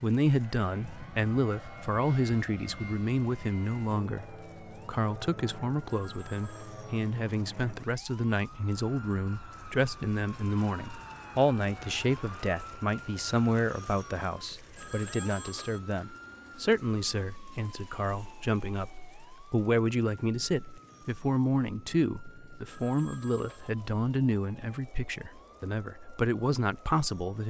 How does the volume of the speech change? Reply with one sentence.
The volume of the speech stays about the same.